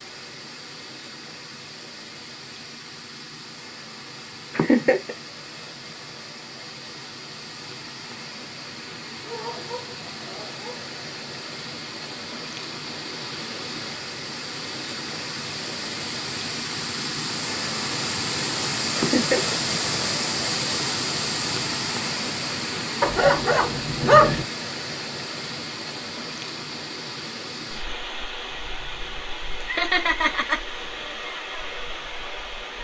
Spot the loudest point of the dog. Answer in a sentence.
The volume of the dog peaks at 24 seconds.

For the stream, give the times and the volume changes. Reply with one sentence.
The stream can be heard from 0.0 to 32.7 s, getting louder then quieter.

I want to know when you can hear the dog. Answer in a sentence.
You can hear the dog from 9.2 to 10.9 s and from 23.0 to 24.4 s.